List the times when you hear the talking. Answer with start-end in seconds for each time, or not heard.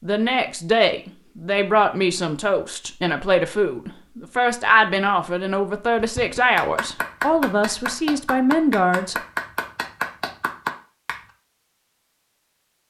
0.0-9.2.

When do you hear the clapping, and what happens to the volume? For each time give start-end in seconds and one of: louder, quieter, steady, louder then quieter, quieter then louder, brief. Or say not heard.
6.0-11.2 steady.